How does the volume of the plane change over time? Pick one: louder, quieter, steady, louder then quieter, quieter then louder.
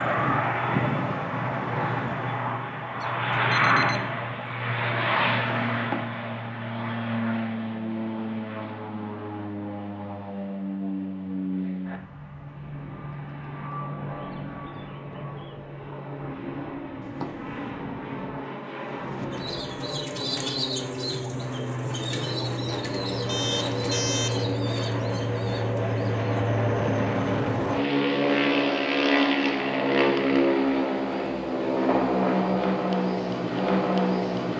quieter then louder.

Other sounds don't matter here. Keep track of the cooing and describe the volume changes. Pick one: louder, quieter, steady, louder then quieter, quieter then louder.
quieter.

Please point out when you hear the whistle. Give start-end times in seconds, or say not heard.
not heard.